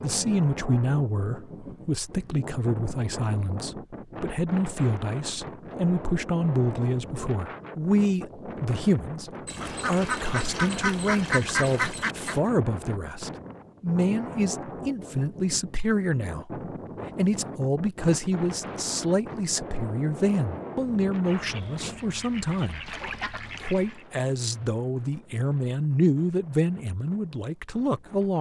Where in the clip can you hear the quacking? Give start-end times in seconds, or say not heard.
9.4-12.4, 21.2-24.1.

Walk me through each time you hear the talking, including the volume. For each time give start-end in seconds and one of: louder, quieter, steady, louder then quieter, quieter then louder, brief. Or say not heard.
0.0-28.3 steady.